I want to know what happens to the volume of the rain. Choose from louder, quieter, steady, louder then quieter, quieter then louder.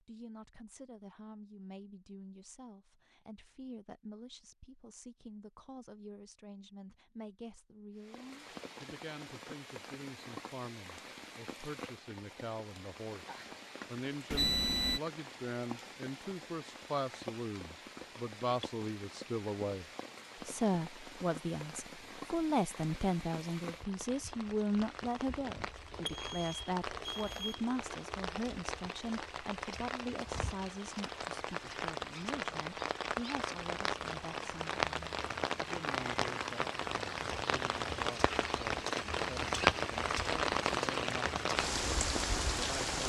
louder.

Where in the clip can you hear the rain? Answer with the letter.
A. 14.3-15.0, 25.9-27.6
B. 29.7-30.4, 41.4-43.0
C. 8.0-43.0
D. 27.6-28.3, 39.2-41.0
C.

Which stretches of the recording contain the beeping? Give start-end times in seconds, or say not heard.
14.3-15.0, 25.9-27.6.